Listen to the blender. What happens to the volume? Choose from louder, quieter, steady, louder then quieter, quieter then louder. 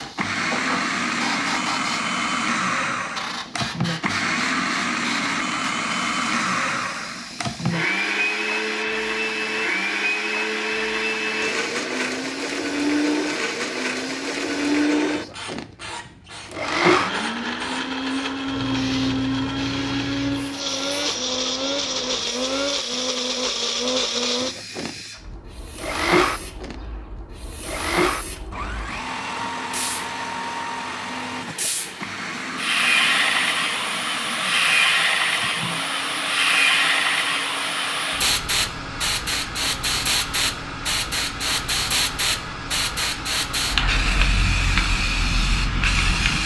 quieter.